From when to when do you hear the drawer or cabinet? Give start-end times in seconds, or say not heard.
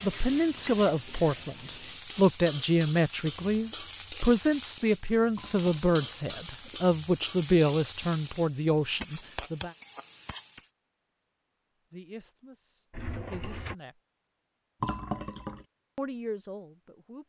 12.9-13.8.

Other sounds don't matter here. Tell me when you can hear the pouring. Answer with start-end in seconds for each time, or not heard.
5.3-6.2, 14.8-15.7.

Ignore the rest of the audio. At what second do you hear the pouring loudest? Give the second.
15 s.